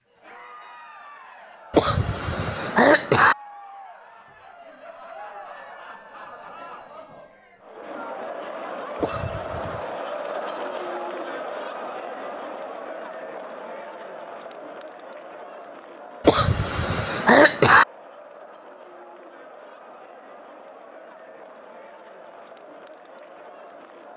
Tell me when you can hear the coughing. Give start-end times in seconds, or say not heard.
1.7-3.4, 9.0-9.9, 16.2-17.9.